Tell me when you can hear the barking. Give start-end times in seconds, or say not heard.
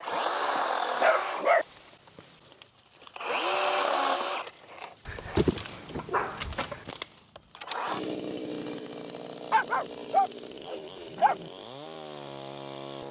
0.6-1.6, 5.0-6.8, 9.5-11.5.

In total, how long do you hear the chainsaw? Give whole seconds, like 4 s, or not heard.
13 s.